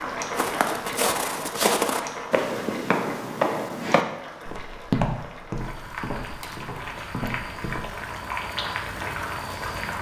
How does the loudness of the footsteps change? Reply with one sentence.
The loudness of the footsteps goes down.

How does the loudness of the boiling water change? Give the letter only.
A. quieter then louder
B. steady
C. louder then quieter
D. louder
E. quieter
A.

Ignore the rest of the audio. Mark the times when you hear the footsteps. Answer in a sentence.
You can hear the footsteps from 0.3 to 7.8 s.